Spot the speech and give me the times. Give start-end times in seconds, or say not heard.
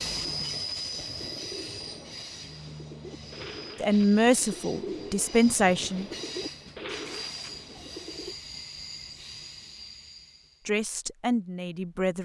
3.8-6.1, 10.7-12.2.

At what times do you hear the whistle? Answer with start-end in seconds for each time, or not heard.
not heard.